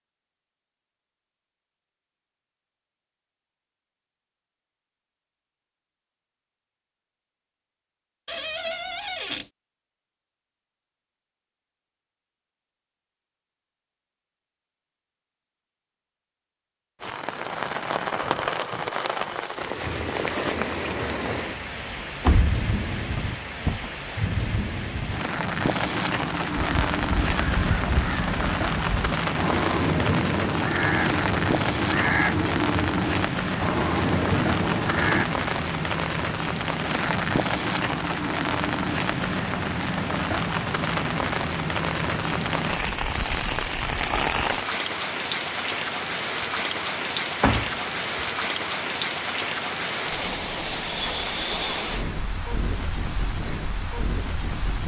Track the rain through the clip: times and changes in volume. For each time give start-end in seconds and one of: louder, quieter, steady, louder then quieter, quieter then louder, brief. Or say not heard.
17.0-54.8 steady.